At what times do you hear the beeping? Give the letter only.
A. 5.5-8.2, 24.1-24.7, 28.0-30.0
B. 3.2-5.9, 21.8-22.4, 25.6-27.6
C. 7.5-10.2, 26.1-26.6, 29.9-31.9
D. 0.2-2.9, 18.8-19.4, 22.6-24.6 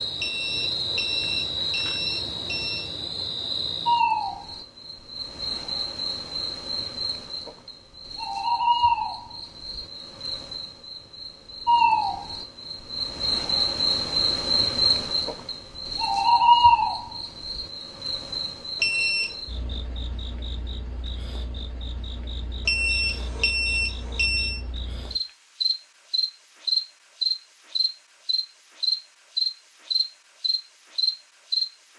D.